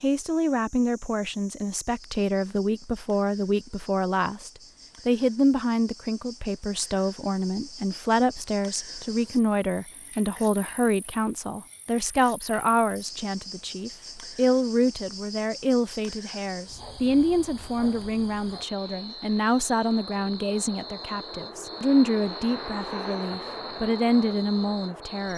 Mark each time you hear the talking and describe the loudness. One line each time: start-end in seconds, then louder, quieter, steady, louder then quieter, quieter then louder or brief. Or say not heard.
0.0-25.3 steady.